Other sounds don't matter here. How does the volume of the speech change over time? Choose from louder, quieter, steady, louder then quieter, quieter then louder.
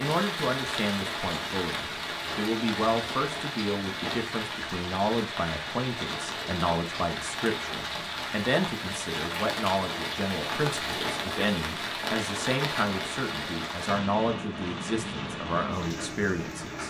steady.